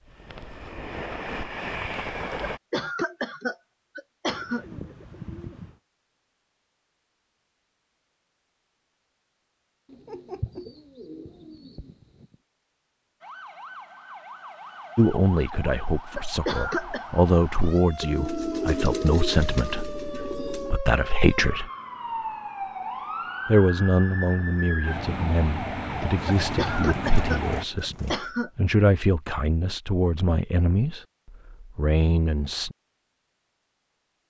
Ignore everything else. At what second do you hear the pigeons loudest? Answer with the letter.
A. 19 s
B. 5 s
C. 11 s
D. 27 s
A.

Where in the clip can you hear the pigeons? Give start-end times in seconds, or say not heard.
4.2-5.8, 9.9-12.3, 18.0-20.8, 26.1-28.3.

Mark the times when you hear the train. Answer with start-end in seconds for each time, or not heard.
0.0-2.6.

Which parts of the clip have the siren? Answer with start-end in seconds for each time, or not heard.
13.2-27.6.